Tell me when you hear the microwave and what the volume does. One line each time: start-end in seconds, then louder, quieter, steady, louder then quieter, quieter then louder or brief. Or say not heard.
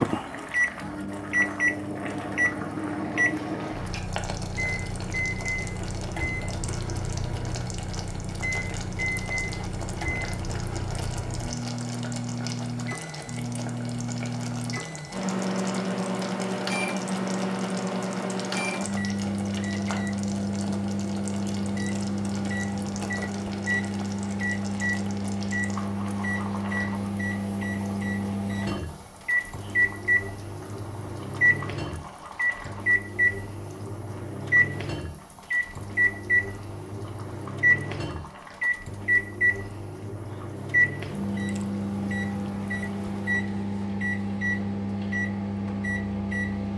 0.0-46.7 steady.